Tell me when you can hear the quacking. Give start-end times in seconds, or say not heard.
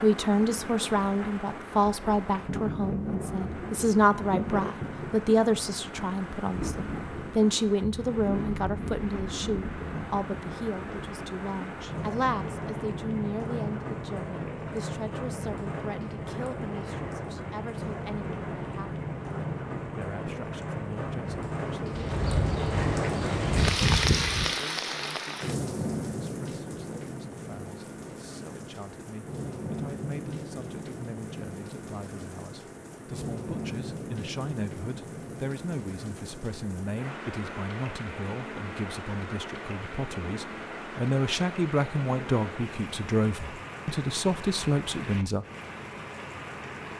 21.9-24.5.